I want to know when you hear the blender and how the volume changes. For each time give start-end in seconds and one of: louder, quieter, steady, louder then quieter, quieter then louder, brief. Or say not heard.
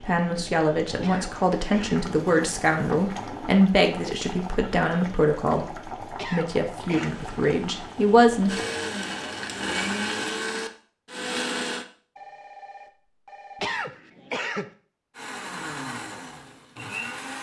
7.0-11.8 louder
15.2-17.3 brief.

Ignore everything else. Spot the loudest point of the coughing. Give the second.
14 s.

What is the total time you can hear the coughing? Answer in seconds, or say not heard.
3 s.